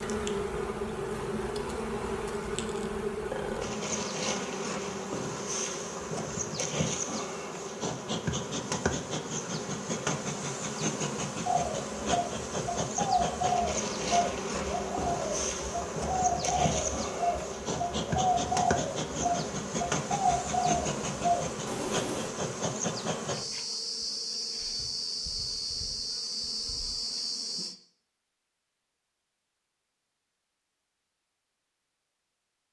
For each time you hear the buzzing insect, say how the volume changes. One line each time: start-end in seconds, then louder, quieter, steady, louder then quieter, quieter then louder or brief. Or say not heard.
0.0-27.8 steady.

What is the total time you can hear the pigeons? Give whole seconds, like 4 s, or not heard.
11 s.